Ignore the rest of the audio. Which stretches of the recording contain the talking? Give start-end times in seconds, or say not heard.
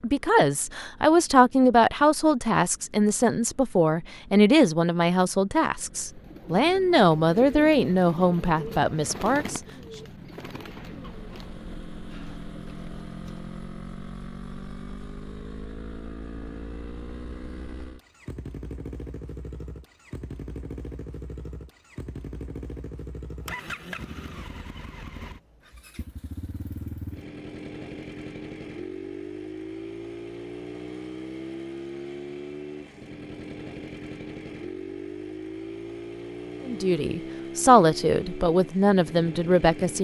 0.0-9.6, 36.6-39.9.